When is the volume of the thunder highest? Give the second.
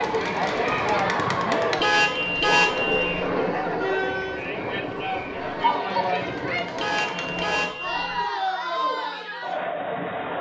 3 s.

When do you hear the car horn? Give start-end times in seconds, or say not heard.
1.8-3.2, 6.8-8.2.